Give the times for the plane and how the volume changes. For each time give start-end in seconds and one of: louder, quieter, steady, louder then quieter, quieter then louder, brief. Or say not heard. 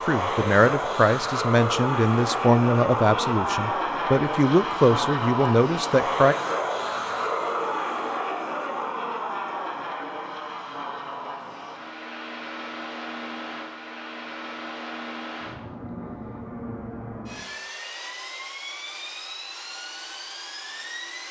0.0-21.2 quieter.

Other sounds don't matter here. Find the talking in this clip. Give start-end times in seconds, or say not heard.
0.1-6.3.